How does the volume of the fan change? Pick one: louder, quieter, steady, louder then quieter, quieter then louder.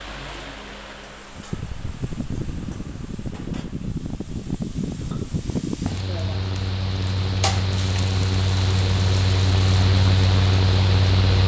louder.